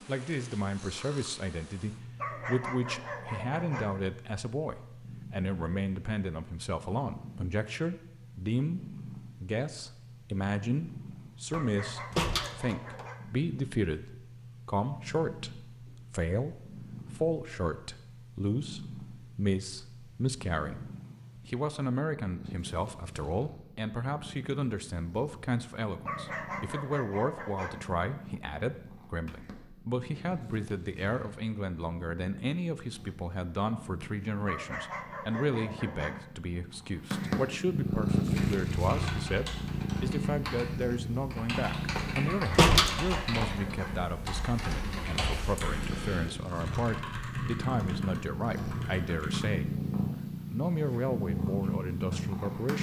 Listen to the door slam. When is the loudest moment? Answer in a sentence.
The volume of the door slam peaks at 43 seconds.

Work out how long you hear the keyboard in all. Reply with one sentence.
You can hear the keyboard for 11 seconds altogether.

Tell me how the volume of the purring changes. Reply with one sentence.
The volume of the purring goes up.